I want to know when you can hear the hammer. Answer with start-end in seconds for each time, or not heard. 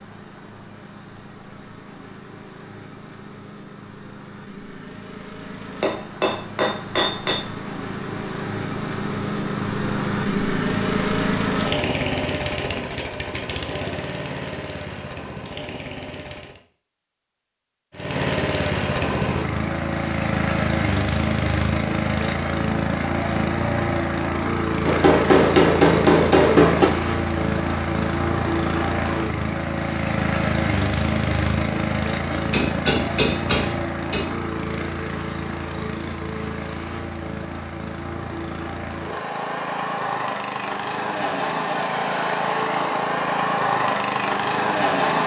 5.8-7.4, 24.9-26.9, 32.3-34.2.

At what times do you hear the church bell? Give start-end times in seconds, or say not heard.
not heard.